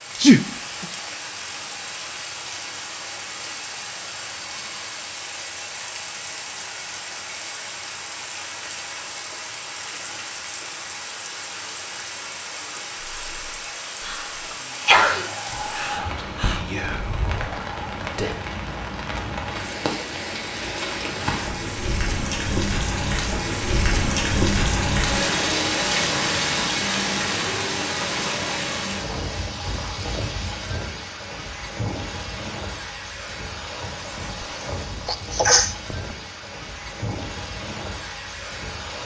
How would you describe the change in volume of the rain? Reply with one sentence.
The loudness of the rain goes up, then down.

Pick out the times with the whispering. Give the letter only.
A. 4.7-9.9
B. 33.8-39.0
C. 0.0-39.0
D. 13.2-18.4
D.